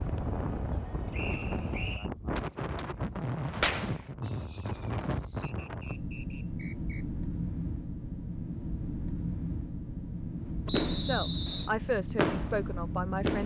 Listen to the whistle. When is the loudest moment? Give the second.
11 s.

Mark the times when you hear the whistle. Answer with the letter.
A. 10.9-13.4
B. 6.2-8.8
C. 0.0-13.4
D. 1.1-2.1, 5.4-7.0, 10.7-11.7
D.